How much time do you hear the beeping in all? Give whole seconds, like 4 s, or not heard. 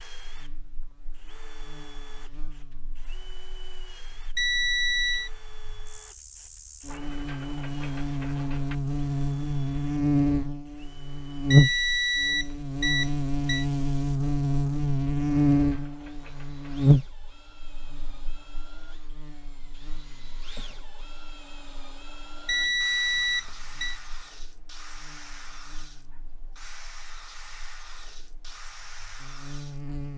5 s.